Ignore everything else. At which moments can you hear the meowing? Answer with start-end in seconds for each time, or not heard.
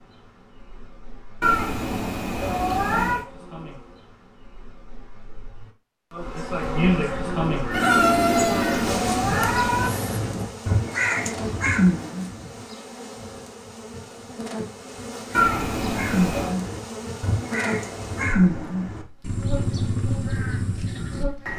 1.4-3.2, 7.8-9.9, 15.3-16.6.